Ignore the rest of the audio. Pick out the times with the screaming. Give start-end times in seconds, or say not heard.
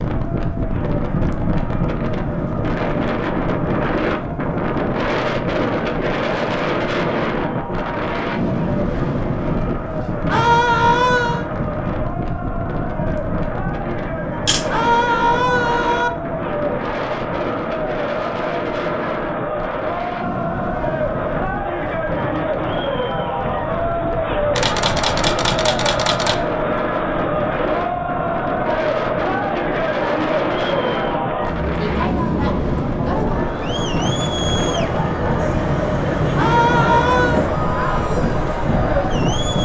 10.2-11.4, 14.7-16.1, 36.4-37.4.